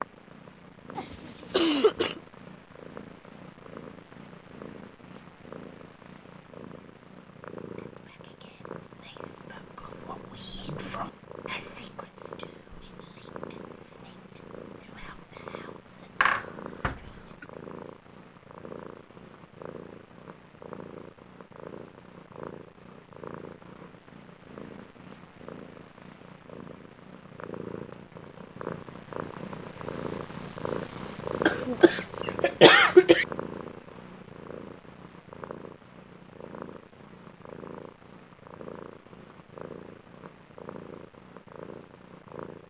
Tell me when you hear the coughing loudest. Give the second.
33 s.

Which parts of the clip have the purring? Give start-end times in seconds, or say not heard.
0.0-42.6.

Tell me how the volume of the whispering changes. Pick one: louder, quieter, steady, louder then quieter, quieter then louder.
louder then quieter.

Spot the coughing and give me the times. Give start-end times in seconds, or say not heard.
0.9-2.2, 16.2-17.4, 31.4-33.2.